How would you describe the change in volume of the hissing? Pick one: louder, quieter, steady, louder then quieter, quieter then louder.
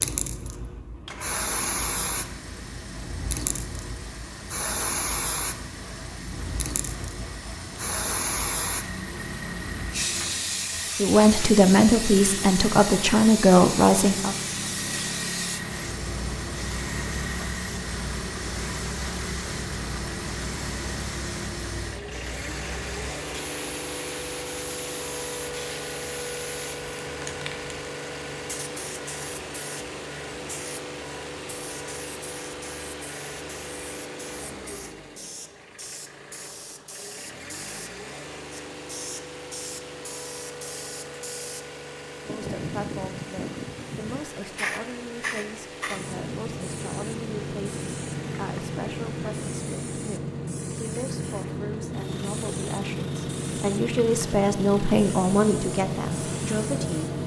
quieter then louder.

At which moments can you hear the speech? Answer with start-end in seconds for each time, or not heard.
10.9-14.3, 42.2-57.1.